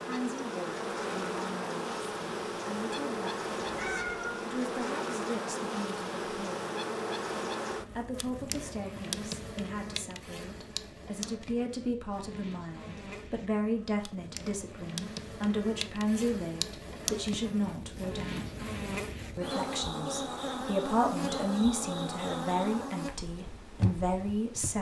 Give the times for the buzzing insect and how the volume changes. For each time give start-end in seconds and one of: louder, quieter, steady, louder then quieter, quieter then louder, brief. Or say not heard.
0.0-24.7 quieter then louder.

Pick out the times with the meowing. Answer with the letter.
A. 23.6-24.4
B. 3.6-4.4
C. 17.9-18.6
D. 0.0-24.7
B.